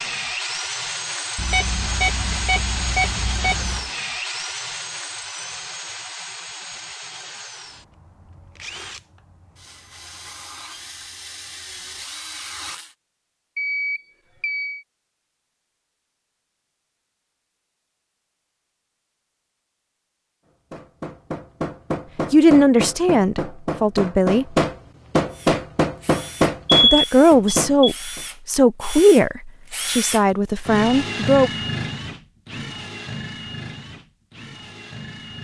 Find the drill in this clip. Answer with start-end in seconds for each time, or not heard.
0.0-12.9, 25.3-35.3.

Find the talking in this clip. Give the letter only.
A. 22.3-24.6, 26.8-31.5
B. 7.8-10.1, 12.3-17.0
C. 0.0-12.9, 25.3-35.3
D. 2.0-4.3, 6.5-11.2
A.